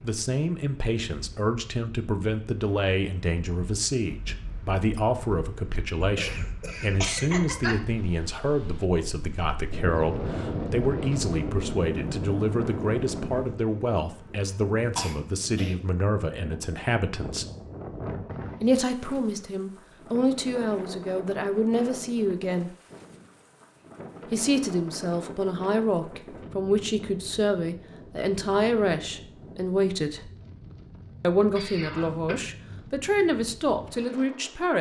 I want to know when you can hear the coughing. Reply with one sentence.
The coughing can be heard from 6.0 to 7.8 s, from 14.9 to 15.8 s and from 31.6 to 32.4 s.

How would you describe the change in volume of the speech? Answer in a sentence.
The volume of the speech stays about the same.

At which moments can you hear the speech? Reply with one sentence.
You can hear the speech from 0.0 to 17.4 s, from 18.6 to 22.7 s, from 24.3 to 30.3 s and from 31.2 to 34.7 s.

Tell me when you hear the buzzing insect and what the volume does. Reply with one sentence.
The buzzing insect can't be heard in this clip.